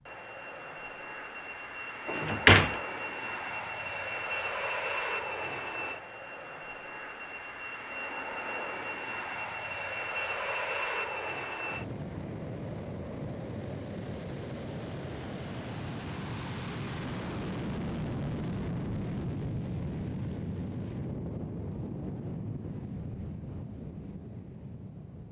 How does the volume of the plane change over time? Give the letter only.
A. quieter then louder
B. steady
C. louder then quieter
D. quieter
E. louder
B.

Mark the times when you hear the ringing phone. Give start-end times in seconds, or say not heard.
not heard.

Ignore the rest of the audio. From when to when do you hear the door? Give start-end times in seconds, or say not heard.
2.0-2.8.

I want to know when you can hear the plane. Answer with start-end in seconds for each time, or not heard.
0.0-25.2.